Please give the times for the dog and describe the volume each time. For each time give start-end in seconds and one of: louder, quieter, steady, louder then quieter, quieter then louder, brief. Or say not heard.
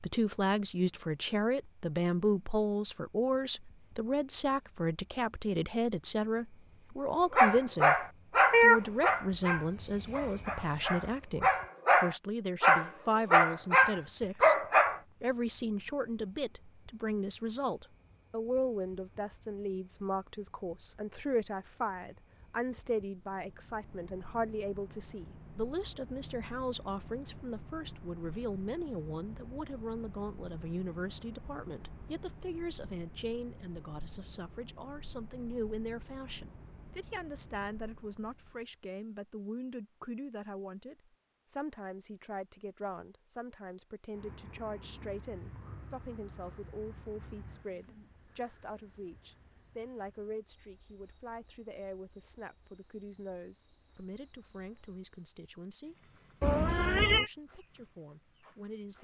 7.3-15.0 quieter then louder.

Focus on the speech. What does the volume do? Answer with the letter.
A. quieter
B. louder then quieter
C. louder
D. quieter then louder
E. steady
A.